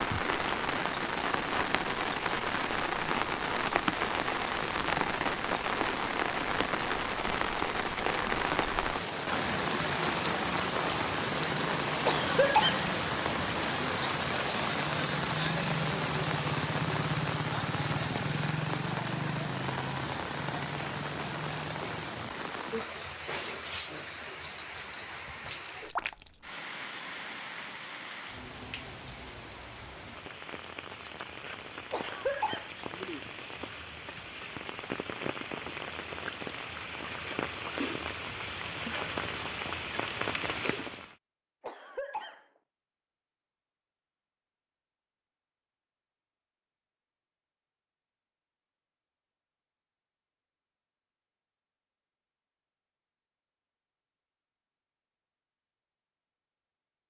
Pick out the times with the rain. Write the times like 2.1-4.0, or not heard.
0.0-41.1.